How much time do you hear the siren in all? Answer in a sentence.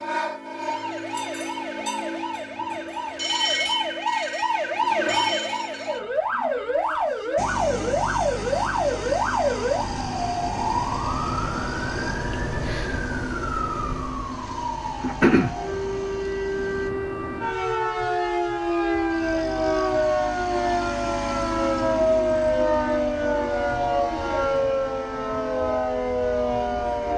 The siren can be heard for 27 seconds in total.